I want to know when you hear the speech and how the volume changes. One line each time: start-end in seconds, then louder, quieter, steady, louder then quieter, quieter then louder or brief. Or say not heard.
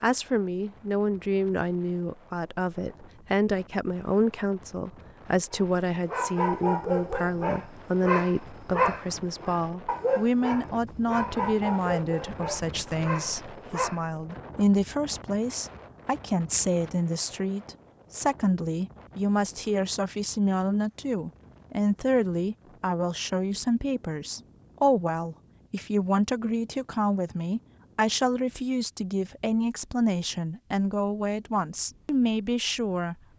0.0-33.1 steady.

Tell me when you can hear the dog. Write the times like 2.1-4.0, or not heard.
5.5-14.0.